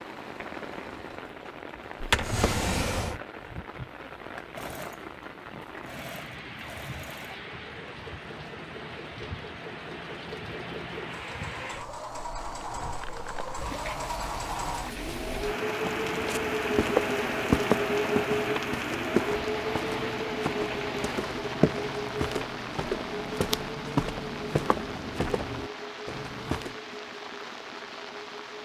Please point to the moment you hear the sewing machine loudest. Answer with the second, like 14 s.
18 s.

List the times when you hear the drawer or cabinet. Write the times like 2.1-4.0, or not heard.
2.0-3.2.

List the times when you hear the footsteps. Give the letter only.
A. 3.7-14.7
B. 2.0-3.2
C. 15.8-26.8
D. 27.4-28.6
C.